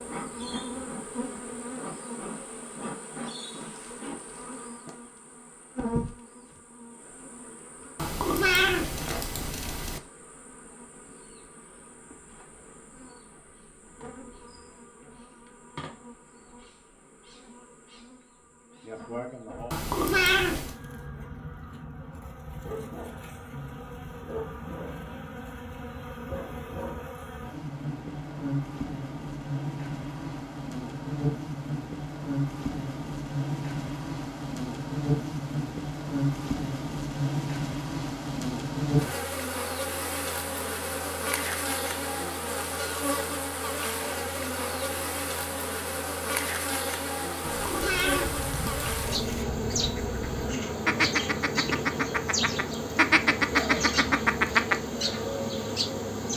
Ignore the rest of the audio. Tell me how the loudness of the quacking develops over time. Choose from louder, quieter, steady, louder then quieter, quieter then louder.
louder.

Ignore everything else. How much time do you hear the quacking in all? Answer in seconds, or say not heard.
7 s.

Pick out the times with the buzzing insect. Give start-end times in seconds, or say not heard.
0.0-56.3.